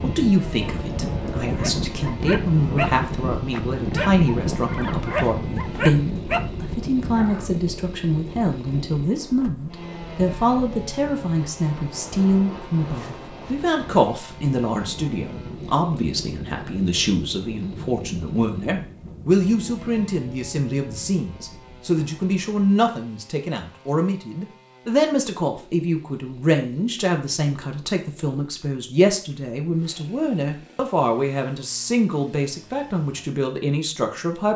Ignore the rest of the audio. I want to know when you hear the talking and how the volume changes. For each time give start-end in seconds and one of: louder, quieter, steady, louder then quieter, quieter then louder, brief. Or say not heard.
0.0-34.5 steady.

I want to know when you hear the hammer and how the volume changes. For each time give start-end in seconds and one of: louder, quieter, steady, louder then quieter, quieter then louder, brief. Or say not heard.
not heard.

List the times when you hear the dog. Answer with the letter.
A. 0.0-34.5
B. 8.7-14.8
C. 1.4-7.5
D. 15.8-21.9
C.